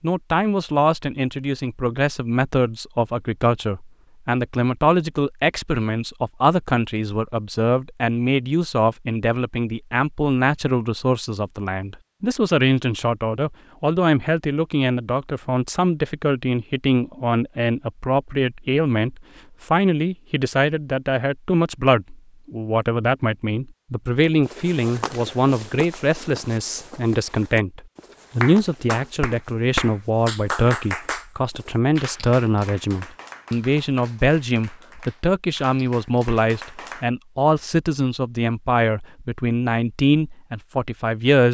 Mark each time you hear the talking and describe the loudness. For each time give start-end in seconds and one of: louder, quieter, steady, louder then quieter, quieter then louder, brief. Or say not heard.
0.0-41.4 steady.